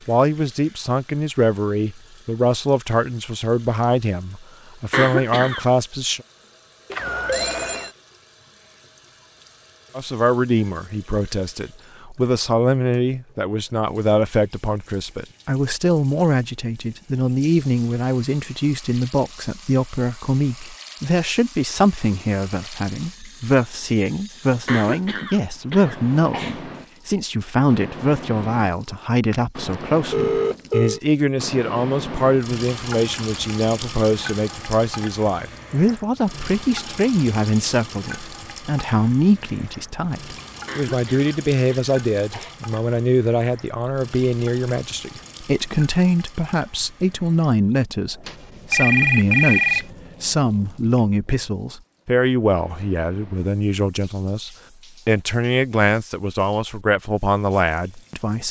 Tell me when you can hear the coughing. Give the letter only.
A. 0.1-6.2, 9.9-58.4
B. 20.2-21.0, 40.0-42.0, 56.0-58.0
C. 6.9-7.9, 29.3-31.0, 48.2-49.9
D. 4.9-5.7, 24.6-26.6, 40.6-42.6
D.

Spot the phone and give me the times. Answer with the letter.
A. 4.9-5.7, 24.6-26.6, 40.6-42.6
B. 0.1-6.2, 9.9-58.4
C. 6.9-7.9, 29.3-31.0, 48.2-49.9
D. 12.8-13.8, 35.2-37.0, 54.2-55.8
C.